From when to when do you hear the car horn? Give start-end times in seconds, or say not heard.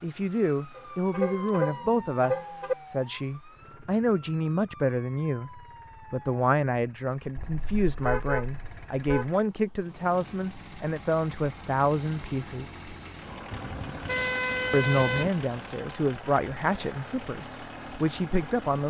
0.8-2.8, 7.3-9.4, 13.5-15.3.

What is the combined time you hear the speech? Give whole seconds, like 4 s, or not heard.
17 s.